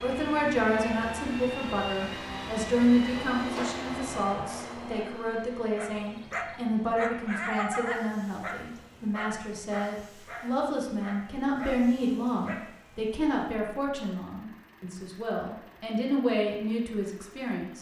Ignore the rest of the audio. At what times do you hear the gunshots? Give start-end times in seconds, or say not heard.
3.1-5.1.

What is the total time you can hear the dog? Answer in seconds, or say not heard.
7 s.